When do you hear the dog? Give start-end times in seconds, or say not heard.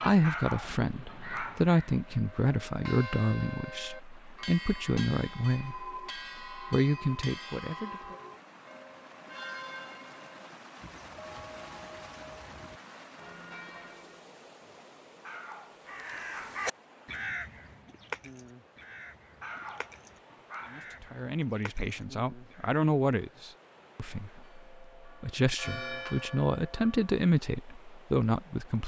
0.2-1.7, 15.2-16.6, 19.4-20.9.